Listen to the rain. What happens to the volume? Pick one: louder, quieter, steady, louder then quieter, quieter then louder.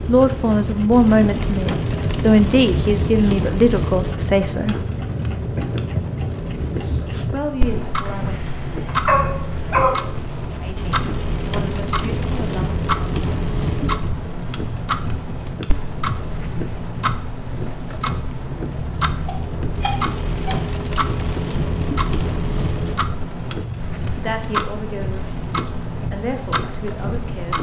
steady.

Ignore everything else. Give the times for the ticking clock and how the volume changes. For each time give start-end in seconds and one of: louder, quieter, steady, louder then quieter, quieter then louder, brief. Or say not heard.
0.0-27.5 steady.